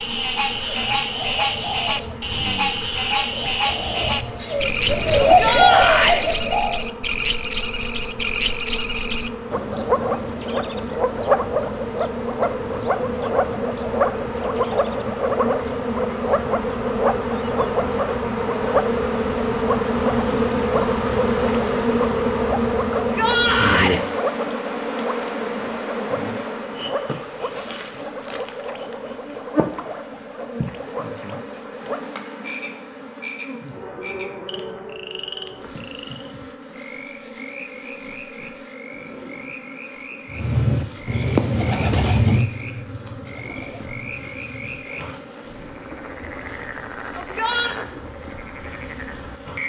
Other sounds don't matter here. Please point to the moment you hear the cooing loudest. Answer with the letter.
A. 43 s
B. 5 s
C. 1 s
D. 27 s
B.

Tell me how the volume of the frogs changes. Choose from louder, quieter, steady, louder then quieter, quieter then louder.
quieter.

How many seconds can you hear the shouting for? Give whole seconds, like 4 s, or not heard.
3 s.